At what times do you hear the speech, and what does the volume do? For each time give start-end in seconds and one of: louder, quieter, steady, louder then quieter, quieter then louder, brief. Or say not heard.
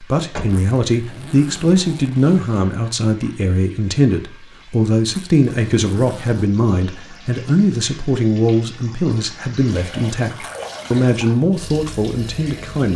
0.0-12.9 steady.